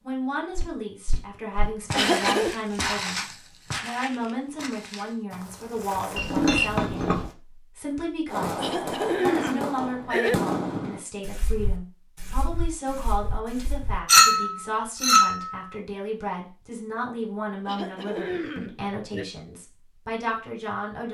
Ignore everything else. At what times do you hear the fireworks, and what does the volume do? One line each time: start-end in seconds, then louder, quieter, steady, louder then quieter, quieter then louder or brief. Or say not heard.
8.2-14.0 quieter.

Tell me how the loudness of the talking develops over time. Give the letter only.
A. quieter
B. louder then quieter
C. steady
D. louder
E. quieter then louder
C.